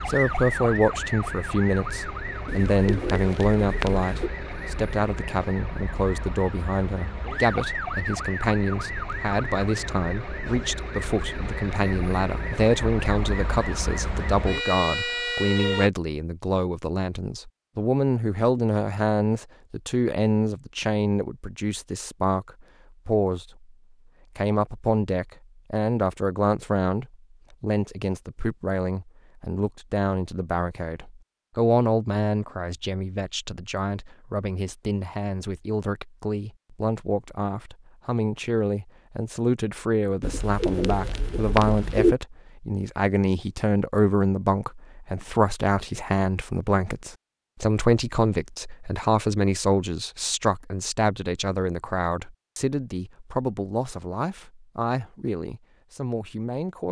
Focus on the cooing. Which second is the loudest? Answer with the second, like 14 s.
42 s.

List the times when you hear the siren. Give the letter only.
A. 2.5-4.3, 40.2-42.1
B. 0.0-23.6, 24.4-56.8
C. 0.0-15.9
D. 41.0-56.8
C.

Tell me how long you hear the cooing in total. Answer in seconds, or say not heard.
4 s.